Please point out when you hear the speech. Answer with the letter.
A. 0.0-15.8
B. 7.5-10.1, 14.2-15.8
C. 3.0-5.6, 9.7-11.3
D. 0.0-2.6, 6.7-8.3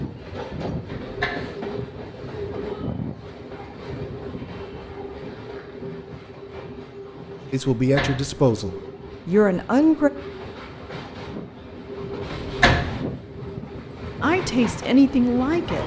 B.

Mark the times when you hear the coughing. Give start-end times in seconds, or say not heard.
not heard.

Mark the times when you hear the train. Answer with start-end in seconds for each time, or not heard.
0.0-15.8.